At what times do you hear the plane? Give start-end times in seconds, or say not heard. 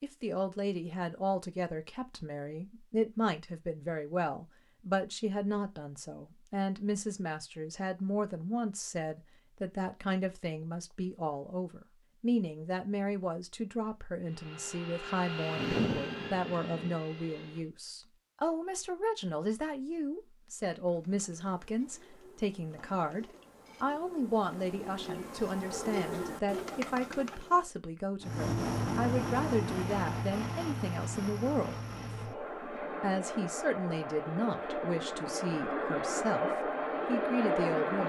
14.2-17.7, 28.2-38.0.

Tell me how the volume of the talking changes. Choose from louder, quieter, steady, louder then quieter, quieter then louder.
steady.